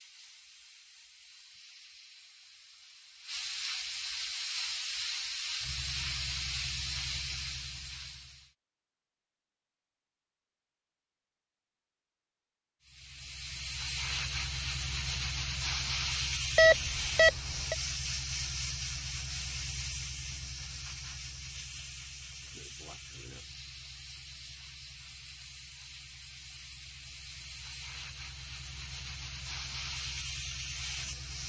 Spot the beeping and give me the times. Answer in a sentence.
You can hear the beeping from 16.6 to 17.8 s.